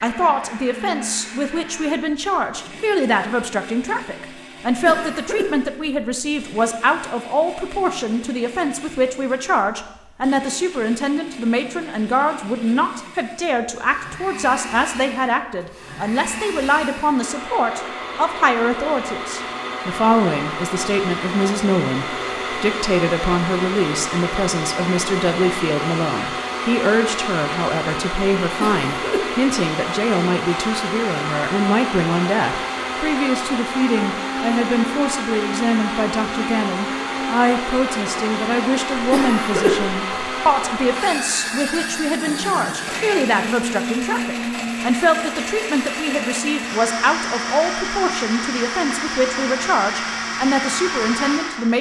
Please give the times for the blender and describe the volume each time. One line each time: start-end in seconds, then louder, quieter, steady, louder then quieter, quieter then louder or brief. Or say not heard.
0.0-51.7 louder.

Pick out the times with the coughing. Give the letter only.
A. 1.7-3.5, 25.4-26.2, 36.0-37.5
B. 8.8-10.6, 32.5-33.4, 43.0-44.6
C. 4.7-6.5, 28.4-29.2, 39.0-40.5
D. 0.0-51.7
C.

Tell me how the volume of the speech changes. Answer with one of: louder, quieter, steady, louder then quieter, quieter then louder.
steady.